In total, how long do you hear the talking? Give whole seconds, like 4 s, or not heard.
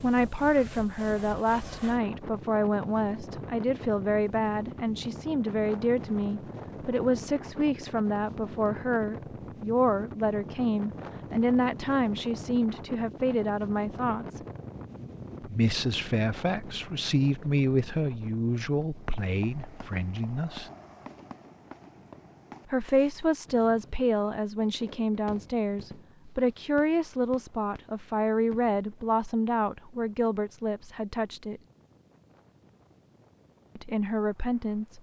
30 s.